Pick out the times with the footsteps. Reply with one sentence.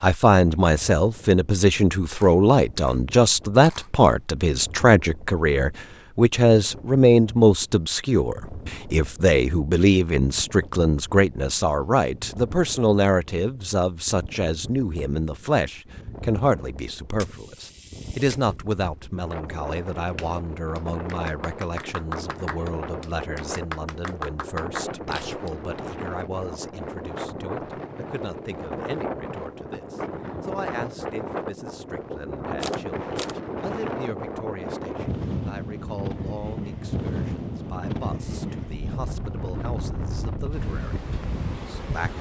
You can't hear the footsteps here.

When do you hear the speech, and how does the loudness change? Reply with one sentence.
You can hear the speech from 0.0 to 42.1 s, getting quieter.